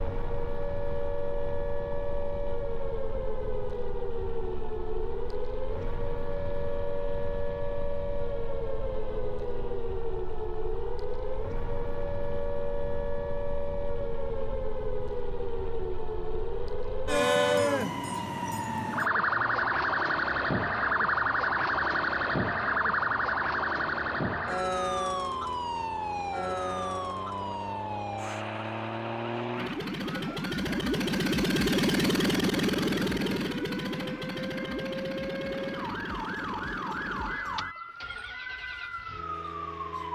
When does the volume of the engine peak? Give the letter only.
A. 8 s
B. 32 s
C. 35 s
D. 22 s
B.